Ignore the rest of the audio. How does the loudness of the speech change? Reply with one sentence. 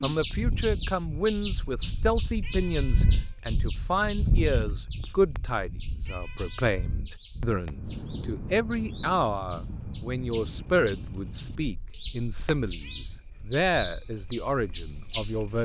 The loudness of the speech stays about the same.